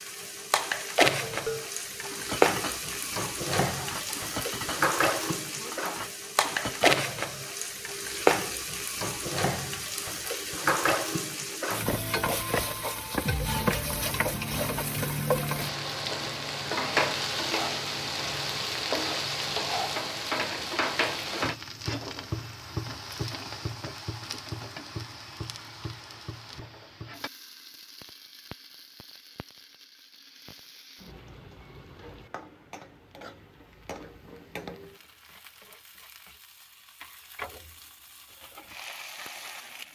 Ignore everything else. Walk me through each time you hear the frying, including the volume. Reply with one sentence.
The frying can be heard from 0.0 to 39.8 s, getting quieter.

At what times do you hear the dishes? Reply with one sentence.
You can hear the dishes from 1.2 to 7.0 s.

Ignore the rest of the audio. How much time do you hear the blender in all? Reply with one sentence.
You can't hear the blender here.